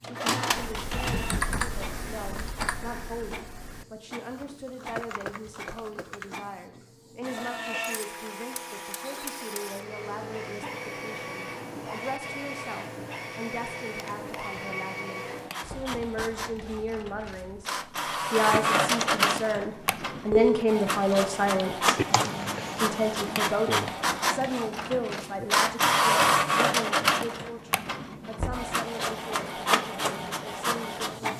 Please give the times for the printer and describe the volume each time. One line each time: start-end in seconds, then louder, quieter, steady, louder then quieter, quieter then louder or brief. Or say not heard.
0.0-31.3 louder.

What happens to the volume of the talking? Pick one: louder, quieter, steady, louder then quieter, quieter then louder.
louder then quieter.